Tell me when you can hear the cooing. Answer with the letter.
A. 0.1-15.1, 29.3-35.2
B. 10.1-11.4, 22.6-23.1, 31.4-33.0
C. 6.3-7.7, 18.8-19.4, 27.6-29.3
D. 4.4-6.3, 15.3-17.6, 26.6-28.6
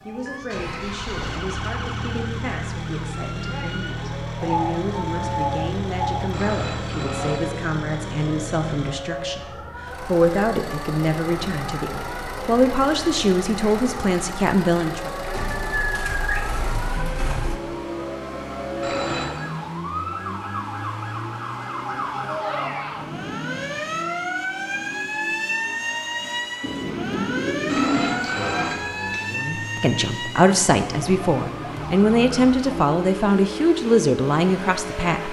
D.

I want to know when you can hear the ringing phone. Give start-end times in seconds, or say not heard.
6.3-7.7, 18.8-19.4, 27.6-29.3.